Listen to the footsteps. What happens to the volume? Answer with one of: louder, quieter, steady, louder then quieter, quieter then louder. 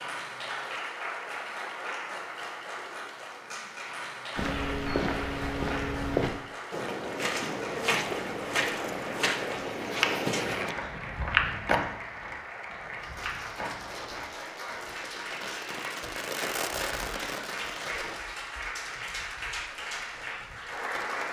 quieter.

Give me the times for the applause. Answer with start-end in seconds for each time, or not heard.
0.0-21.2.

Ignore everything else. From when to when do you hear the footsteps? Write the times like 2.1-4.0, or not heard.
4.3-14.8.